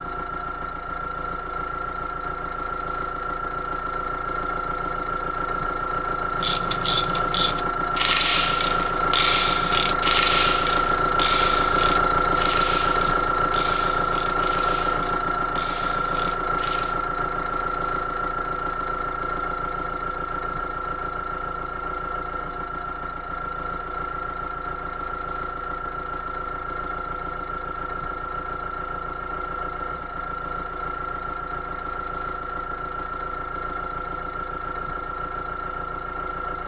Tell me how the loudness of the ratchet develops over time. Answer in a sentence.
The loudness of the ratchet goes down.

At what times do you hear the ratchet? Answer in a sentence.
The ratchet can be heard from 6.3 to 16.9 s.